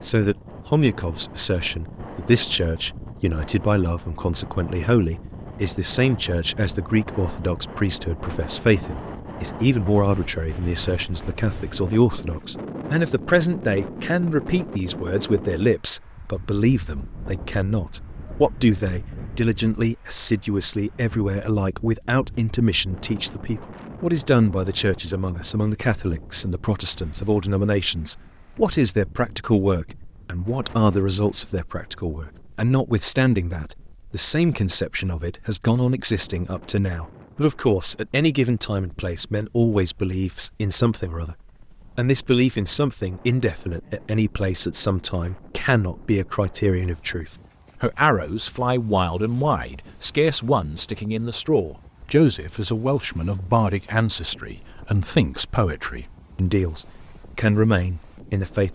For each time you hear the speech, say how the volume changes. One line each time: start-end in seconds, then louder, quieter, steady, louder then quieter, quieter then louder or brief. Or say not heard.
0.0-41.4 steady
42.0-58.6 steady.